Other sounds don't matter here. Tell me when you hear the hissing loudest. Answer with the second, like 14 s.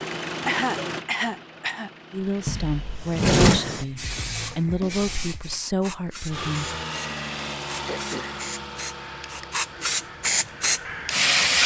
11 s.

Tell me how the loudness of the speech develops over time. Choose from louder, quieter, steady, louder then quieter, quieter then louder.
steady.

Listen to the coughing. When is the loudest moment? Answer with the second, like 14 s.
1 s.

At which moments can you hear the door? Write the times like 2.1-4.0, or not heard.
2.5-3.6.